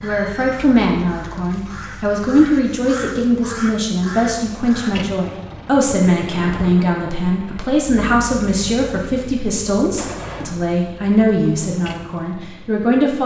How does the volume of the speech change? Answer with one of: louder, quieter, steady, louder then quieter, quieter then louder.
steady.